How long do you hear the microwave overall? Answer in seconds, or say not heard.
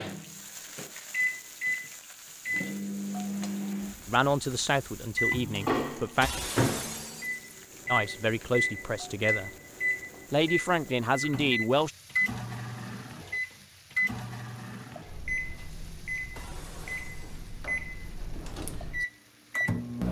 20 s.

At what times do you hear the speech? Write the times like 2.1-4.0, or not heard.
4.0-6.3, 7.9-9.5, 10.3-11.9.